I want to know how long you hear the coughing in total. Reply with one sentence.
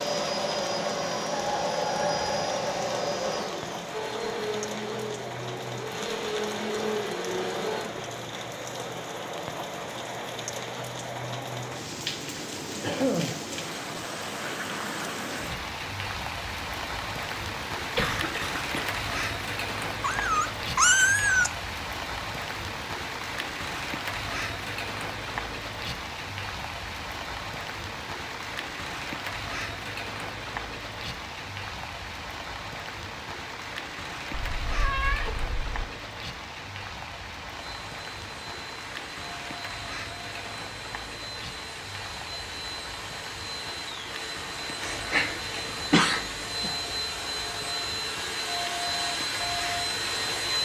You can hear the coughing for 4 seconds altogether.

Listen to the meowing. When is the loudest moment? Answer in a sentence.
The loudest moment of the meowing is at 21 seconds.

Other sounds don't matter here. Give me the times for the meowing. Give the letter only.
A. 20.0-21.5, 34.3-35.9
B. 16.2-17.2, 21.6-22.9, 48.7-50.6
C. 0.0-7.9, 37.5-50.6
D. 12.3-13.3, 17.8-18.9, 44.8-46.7
A.